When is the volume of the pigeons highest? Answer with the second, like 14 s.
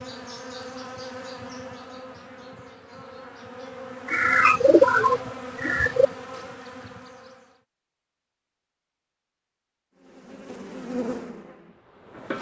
5 s.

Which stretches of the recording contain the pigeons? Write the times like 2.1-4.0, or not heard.
4.0-6.1.